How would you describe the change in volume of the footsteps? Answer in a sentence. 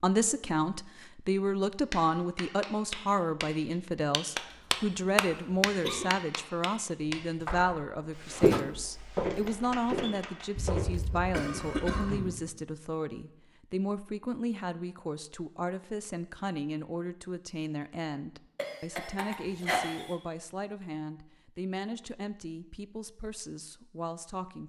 The loudness of the footsteps goes down.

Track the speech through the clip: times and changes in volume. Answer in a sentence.
You can hear the speech from 0.0 to 24.6 s, getting quieter.